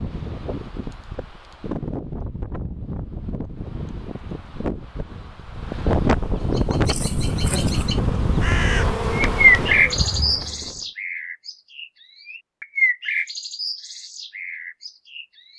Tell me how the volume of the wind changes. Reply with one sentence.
The volume of the wind goes up, then down.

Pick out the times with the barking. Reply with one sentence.
You can't hear the barking here.